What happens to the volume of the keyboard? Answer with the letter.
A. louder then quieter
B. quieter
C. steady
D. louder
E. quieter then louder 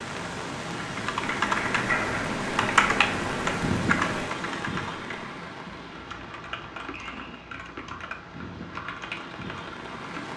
B.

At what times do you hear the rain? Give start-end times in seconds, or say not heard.
0.0-10.3.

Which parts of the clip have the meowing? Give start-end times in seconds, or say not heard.
not heard.